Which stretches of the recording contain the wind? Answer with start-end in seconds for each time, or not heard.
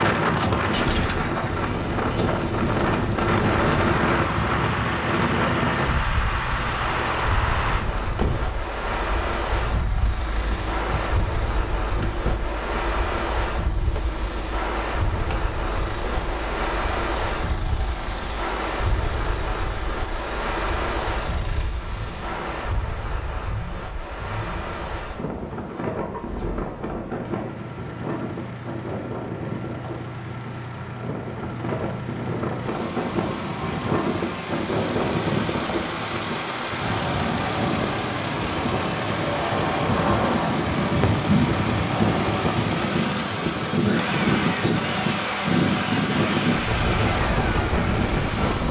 0.0-48.6.